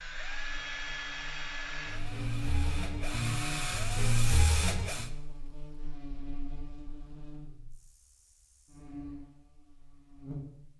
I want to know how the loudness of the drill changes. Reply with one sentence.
The loudness of the drill goes up.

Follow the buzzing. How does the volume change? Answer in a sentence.
The loudness of the buzzing goes up, then down.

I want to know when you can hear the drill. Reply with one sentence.
The drill can be heard from 0.0 to 5.1 s.